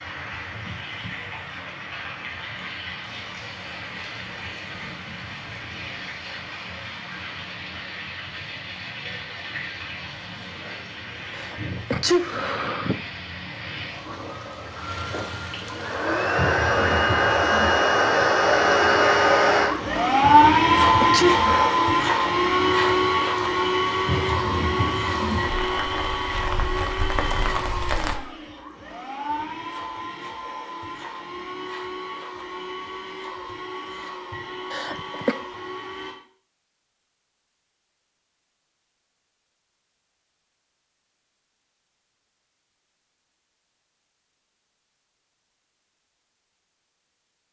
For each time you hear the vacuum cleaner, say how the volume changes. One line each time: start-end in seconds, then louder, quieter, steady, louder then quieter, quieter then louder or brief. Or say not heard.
15.8-36.2 quieter.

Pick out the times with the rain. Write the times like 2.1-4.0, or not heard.
0.0-28.1.